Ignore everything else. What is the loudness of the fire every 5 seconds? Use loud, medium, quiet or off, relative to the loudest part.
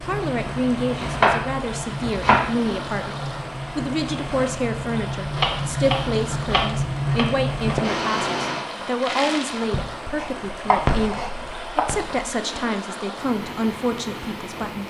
medium, loud, loud.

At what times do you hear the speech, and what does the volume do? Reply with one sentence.
You can hear the speech from 0.0 to 14.8 s, at a steady volume.